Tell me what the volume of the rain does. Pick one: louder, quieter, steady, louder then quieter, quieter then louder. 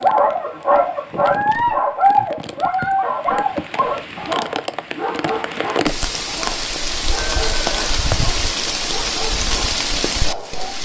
louder.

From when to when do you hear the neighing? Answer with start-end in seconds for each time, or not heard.
7.2-8.0.